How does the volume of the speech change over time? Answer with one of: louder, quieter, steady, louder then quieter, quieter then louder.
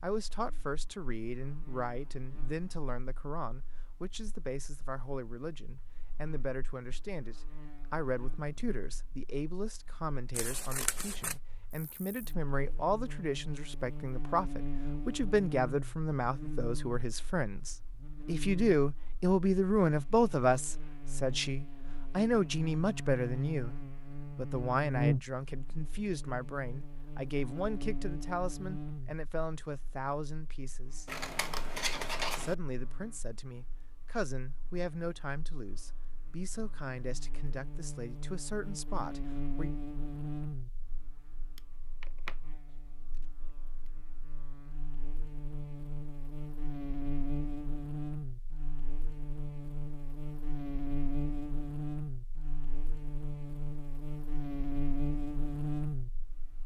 louder then quieter.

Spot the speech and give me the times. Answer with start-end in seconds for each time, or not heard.
0.0-31.1, 32.4-39.7.